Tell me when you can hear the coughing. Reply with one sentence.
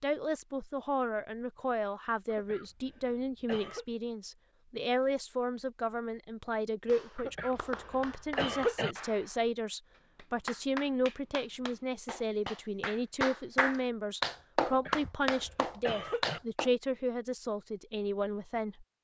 You can hear the coughing from 2.3 to 3.9 s, from 7.2 to 8.9 s and from 14.7 to 16.4 s.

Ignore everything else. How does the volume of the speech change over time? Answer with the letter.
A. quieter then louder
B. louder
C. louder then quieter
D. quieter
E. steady
E.